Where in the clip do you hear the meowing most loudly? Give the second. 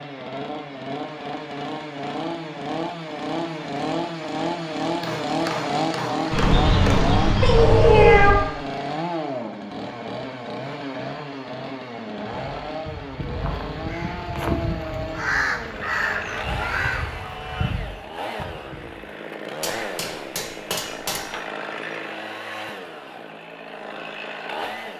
8 s.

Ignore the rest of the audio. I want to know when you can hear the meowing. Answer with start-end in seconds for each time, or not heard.
6.3-8.3.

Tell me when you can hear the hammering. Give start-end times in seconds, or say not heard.
5.0-7.0, 19.6-21.4.